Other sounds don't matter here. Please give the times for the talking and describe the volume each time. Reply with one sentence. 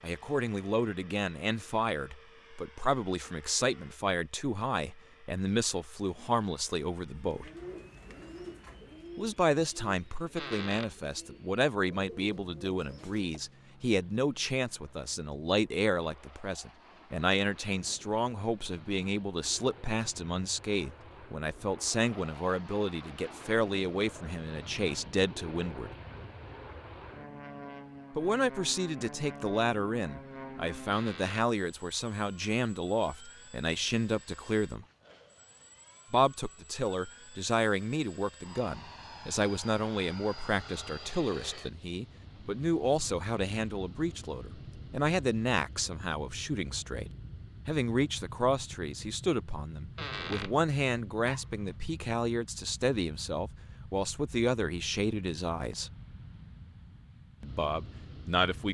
The talking can be heard from 0.0 to 7.5 s, at a steady volume; from 9.2 to 25.9 s, at a steady volume; from 28.1 to 34.9 s, at a steady volume; from 36.1 to 55.9 s, at a steady volume; and briefly from 57.4 to 58.6 s.